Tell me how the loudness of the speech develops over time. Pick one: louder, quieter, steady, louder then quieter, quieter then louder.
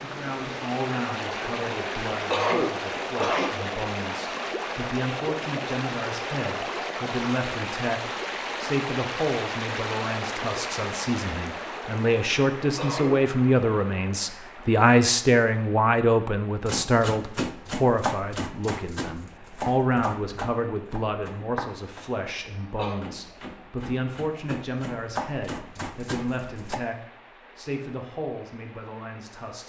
louder then quieter.